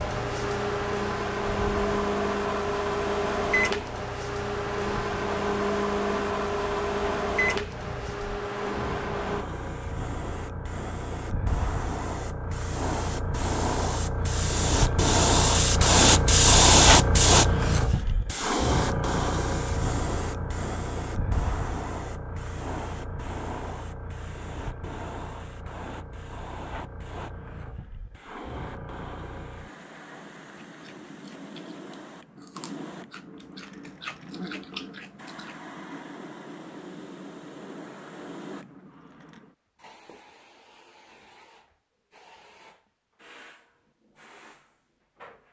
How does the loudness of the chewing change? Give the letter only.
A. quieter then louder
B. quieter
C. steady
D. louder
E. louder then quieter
D.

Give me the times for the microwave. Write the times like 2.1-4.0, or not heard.
0.0-9.4.